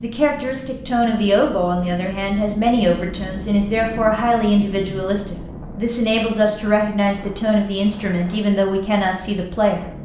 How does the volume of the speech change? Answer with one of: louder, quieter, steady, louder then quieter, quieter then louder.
steady.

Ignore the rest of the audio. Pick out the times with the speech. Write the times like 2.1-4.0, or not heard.
0.0-9.8.